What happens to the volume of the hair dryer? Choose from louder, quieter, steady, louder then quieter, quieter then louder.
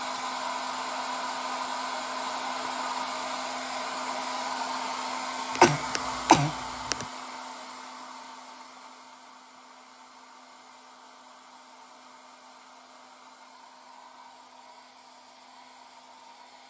quieter.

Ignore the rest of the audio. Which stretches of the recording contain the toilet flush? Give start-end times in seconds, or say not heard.
not heard.